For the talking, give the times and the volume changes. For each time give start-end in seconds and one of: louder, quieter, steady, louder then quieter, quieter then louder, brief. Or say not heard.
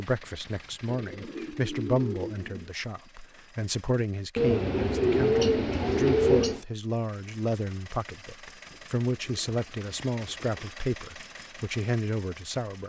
0.0-12.8 steady.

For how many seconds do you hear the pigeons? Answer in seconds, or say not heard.
6 s.